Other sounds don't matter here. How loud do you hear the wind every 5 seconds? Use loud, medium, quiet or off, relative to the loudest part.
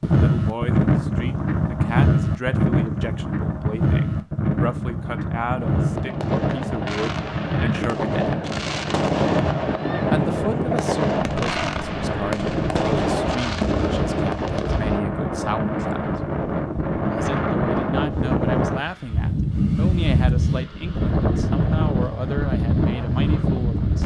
loud, medium, medium, loud, loud.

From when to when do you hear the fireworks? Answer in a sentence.
You can hear the fireworks from 5.5 to 15.1 s.